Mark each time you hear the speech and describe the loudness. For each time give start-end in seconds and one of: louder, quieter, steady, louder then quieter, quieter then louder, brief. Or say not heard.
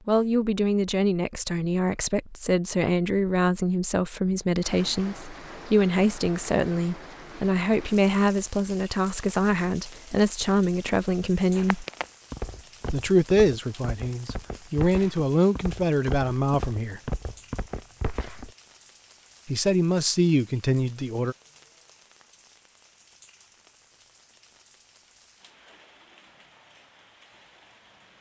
0.1-11.8 steady
12.9-17.0 quieter then louder
19.4-21.4 brief.